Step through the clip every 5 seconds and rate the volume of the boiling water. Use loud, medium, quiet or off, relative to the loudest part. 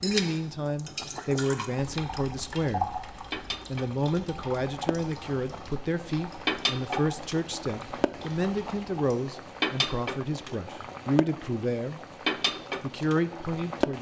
medium, loud, loud.